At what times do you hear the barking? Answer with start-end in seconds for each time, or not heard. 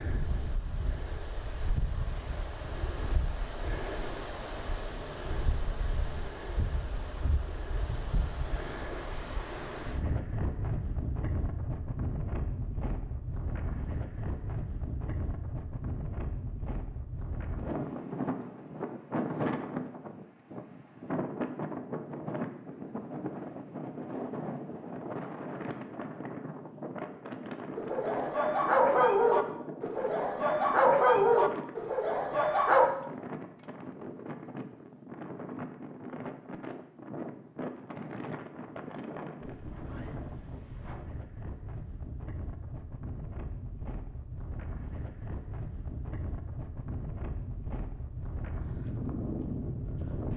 27.8-32.9.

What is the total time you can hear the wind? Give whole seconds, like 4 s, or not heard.
50 s.